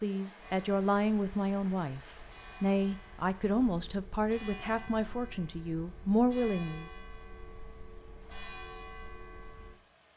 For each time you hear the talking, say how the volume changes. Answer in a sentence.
You can hear the talking briefly from 0.0 to 2.0 s; and from 2.6 to 6.8 s, getting quieter then louder.